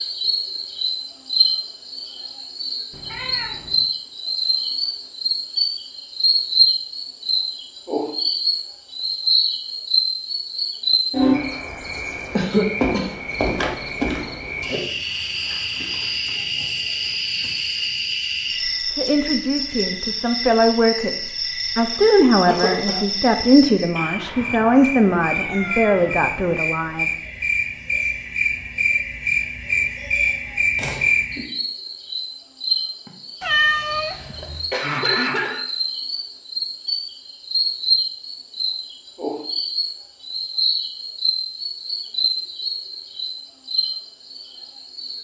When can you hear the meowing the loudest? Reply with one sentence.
The loudest moment of the meowing is at 34 seconds.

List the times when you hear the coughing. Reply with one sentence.
You can hear the coughing from 12.3 to 13.1 s, from 22.4 to 23.1 s and from 33.0 to 35.6 s.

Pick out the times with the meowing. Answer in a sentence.
The meowing can be heard from 2.9 to 3.9 s, from 23.9 to 26.6 s and from 33.4 to 34.6 s.